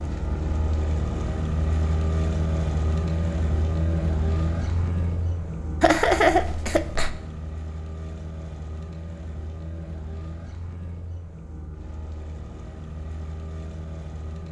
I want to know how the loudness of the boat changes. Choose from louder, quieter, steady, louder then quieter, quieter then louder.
quieter.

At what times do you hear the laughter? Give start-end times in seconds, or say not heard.
5.8-7.1.